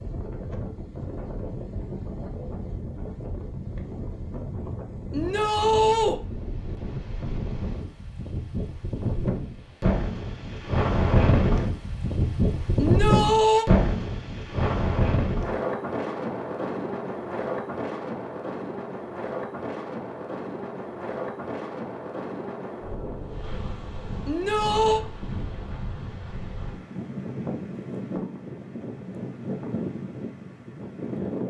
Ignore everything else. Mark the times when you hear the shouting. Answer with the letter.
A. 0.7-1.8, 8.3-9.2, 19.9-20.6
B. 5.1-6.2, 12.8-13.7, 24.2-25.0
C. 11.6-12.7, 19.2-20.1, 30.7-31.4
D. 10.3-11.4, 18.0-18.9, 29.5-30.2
B.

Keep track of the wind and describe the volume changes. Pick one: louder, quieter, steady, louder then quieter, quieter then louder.
louder then quieter.